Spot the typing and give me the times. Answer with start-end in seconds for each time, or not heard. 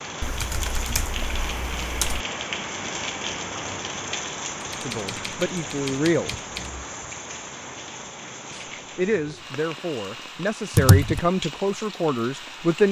0.2-2.2, 4.6-6.8, 10.7-11.3.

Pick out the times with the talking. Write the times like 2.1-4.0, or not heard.
4.8-6.3, 8.5-12.8.